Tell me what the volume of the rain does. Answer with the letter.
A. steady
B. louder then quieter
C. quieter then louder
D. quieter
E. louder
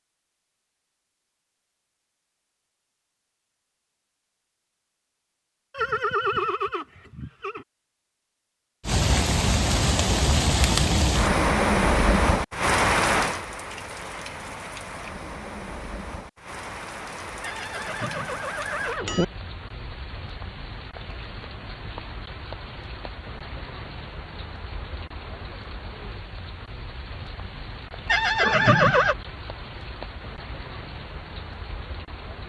D.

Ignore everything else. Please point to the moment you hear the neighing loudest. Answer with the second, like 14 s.
29 s.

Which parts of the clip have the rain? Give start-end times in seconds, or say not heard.
8.8-32.4.